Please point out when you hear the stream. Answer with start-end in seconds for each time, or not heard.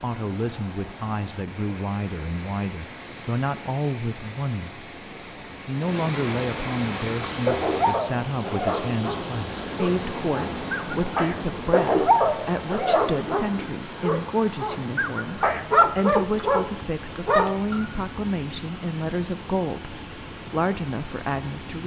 0.0-21.8.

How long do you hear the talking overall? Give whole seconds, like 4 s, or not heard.
21 s.